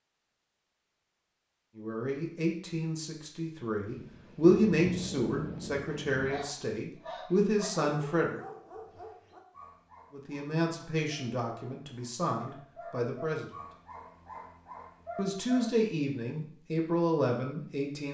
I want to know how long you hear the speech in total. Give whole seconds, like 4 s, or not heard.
13 s.